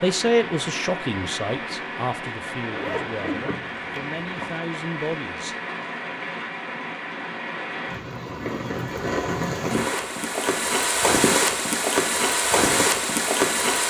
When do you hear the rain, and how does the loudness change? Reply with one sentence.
The rain can be heard from 0.0 to 13.8 s, getting louder.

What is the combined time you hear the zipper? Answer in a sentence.
You can hear the zipper for 2 seconds altogether.